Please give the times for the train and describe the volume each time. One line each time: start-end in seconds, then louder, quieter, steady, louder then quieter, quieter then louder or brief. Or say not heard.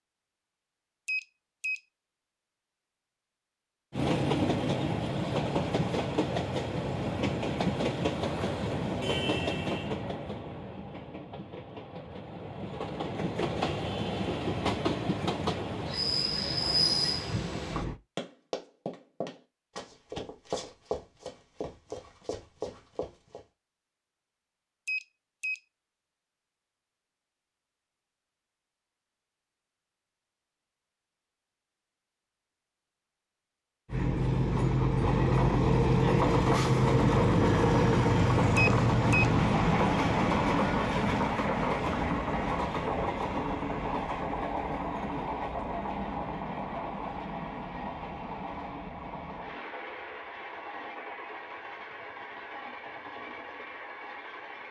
3.9-18.0 quieter then louder
33.9-54.6 quieter.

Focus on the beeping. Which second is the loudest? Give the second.
39 s.